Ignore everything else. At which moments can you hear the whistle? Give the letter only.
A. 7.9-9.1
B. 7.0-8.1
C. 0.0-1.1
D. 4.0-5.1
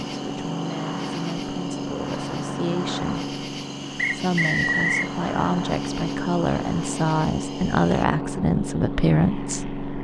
D.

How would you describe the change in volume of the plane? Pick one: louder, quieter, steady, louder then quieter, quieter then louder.
steady.